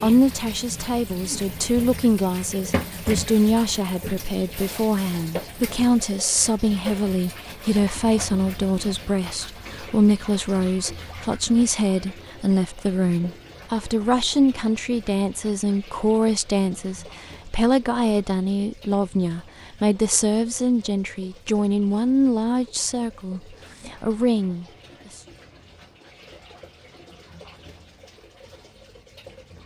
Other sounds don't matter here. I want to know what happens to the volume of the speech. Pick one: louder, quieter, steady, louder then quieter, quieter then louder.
steady.